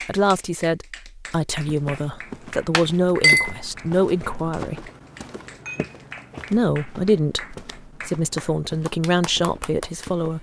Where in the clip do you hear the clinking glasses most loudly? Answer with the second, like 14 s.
3 s.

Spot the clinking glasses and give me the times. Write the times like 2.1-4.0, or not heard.
2.7-3.5, 5.7-6.5.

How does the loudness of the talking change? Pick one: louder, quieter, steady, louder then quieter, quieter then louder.
steady.